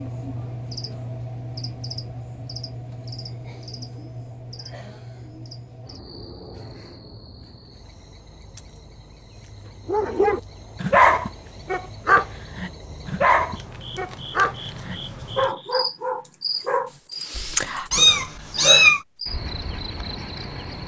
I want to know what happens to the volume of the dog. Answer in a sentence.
The volume of the dog goes down.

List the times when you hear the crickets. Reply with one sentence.
You can hear the crickets from 0.0 to 20.8 s.